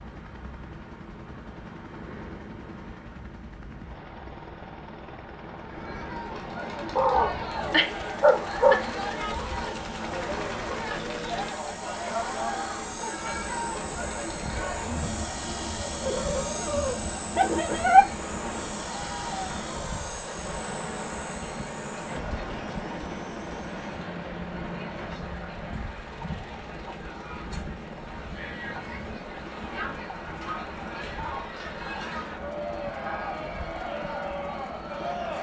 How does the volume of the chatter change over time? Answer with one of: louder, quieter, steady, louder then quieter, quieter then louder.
quieter then louder.